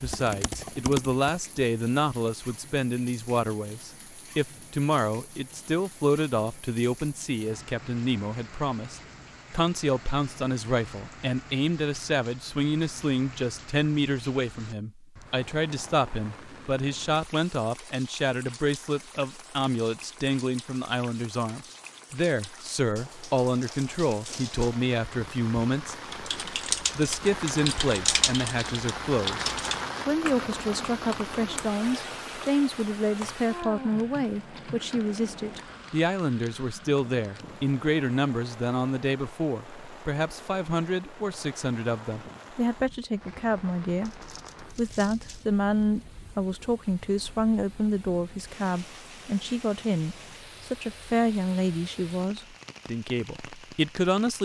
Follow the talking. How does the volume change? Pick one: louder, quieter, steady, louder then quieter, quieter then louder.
steady.